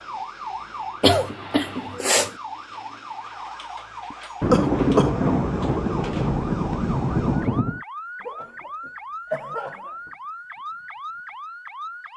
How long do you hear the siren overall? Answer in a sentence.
The siren can be heard for 12 seconds in total.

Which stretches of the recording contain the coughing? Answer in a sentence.
You can hear the coughing from 1.0 to 2.3 s, from 4.1 to 5.1 s and from 8.2 to 10.1 s.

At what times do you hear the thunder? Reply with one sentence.
The thunder can be heard from 4.4 to 7.8 s.